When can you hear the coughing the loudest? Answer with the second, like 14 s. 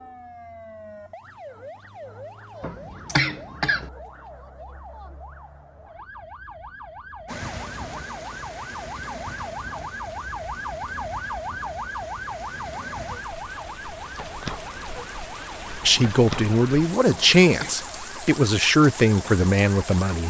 3 s.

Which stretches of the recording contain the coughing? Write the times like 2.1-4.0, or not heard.
2.6-3.9, 17.1-17.7.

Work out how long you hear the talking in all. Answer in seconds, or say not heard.
4 s.